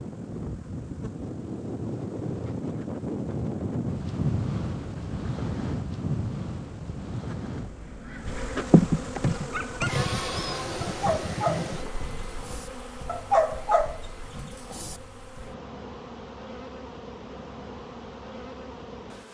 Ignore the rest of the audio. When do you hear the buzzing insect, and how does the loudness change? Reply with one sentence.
You can hear the buzzing insect from 0.0 to 19.2 s, getting louder then quieter.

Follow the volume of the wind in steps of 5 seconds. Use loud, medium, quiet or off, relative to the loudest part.
loud, loud, medium, off.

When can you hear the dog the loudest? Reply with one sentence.
The loudest moment of the dog is at 13 seconds.